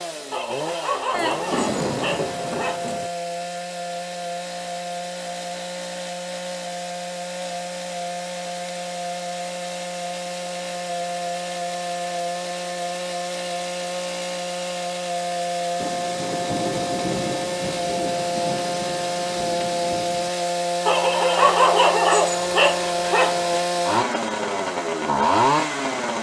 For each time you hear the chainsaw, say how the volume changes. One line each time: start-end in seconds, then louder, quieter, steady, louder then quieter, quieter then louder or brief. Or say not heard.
0.0-26.1 louder.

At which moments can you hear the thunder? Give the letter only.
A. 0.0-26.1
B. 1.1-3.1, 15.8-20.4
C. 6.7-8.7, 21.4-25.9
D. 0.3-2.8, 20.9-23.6
B.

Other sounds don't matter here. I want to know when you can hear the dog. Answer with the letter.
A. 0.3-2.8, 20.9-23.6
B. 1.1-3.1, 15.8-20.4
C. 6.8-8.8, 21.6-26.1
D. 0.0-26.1
A.